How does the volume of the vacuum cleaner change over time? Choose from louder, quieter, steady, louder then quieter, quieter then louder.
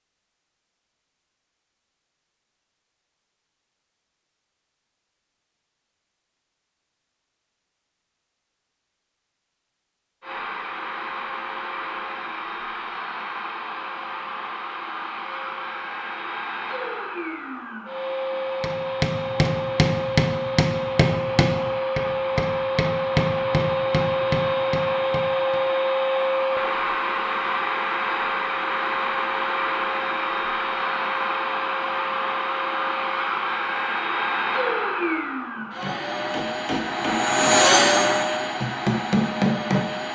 louder.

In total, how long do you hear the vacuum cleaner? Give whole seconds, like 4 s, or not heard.
30 s.